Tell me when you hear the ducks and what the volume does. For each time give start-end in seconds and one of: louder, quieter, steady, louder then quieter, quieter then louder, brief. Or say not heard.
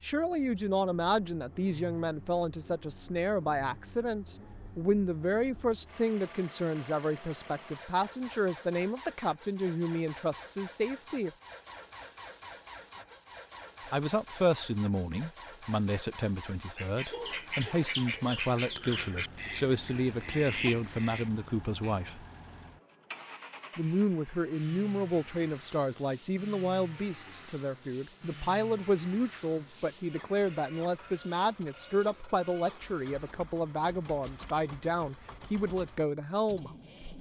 16.8-21.9 steady.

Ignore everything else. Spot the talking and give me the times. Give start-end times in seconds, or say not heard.
0.0-11.3, 13.9-22.2, 23.8-36.7.